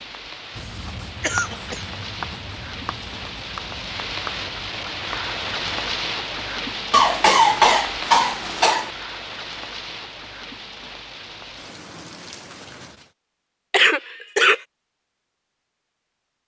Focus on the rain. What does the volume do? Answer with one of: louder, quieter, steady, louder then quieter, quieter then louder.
louder then quieter.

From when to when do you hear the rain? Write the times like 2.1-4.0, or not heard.
0.0-13.2.